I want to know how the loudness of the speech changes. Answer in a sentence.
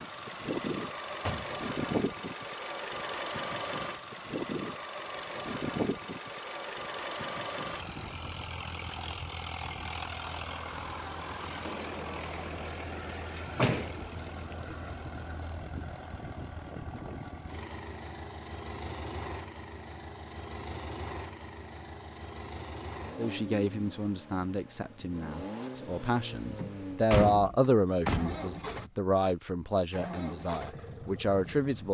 The volume of the speech goes up, then down.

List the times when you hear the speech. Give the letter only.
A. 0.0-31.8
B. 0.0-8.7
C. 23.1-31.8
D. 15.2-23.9
C.